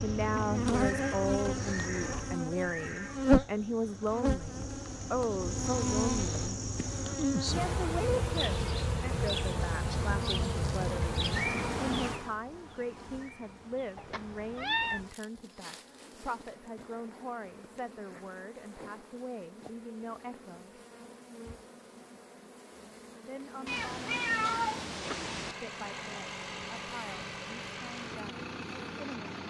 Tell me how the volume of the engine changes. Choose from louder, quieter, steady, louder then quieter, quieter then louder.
steady.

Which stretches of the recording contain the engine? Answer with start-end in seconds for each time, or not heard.
25.0-29.4.